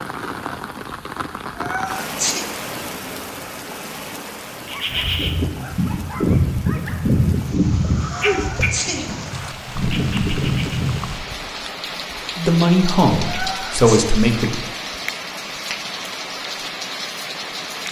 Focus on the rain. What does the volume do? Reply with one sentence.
The volume of the rain goes down, then up.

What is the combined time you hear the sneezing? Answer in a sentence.
The sneezing can be heard for 3 seconds in total.